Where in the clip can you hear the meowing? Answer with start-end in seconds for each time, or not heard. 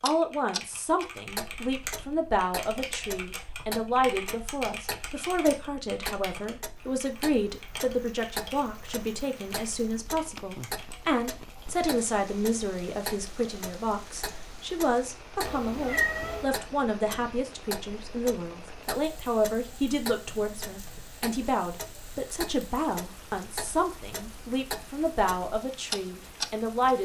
15.4-16.4.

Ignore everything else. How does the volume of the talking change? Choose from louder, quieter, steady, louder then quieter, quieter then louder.
steady.